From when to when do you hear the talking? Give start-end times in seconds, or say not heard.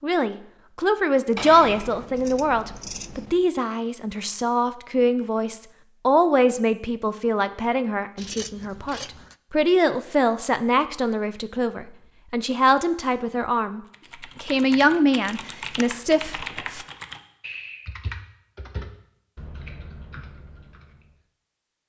0.0-16.9.